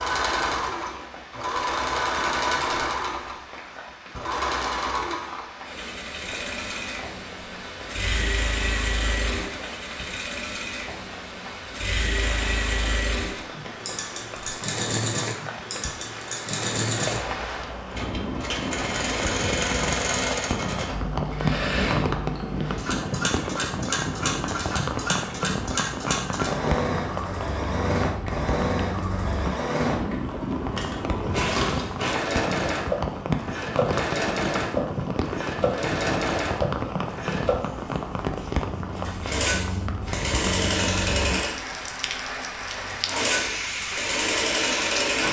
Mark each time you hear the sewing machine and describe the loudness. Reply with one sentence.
You can hear the sewing machine from 0.0 to 45.2 s, at a steady volume.